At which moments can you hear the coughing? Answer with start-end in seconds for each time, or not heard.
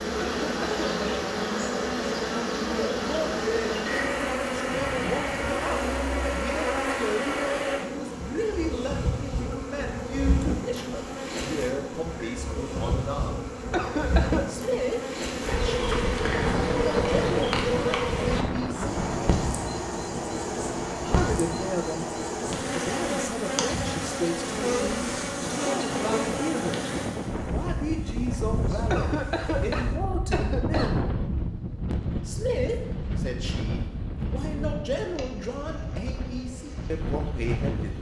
0.1-1.2, 13.7-14.4, 28.9-30.9.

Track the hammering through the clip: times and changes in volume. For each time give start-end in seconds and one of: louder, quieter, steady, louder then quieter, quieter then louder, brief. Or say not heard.
not heard.